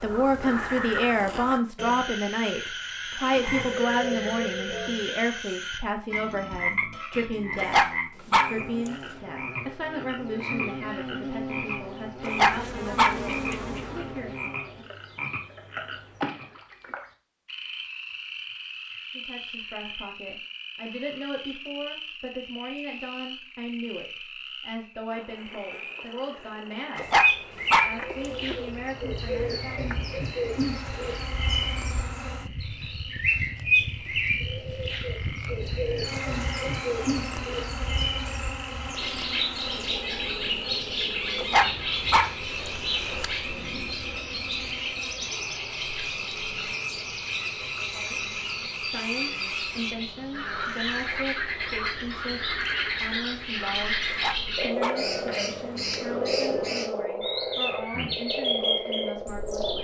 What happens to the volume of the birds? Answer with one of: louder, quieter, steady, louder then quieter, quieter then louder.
quieter then louder.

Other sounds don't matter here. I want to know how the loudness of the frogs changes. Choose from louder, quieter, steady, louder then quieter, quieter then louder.
quieter then louder.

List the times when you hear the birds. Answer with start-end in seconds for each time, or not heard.
27.1-59.8.